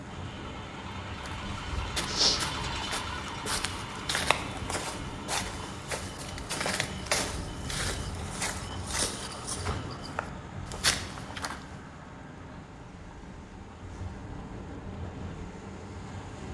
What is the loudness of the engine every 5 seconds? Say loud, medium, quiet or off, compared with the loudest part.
loud, medium, medium, medium.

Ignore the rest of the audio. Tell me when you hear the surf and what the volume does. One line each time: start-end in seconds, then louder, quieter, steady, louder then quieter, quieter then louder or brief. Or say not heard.
0.0-16.4 steady.